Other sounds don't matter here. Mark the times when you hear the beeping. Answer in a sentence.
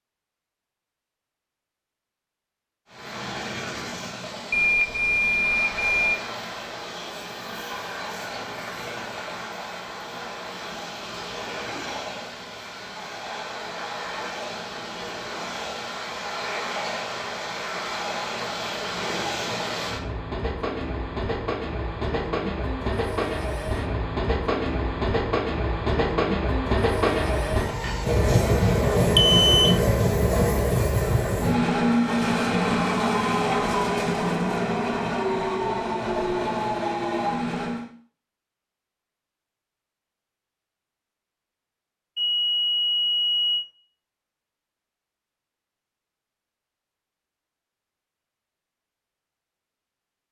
The beeping can be heard from 4.5 to 6.2 s, from 29.1 to 29.8 s and from 42.1 to 43.6 s.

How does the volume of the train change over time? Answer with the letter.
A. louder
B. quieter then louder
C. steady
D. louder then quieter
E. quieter
A.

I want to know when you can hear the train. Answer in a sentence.
You can hear the train from 2.9 to 37.9 s.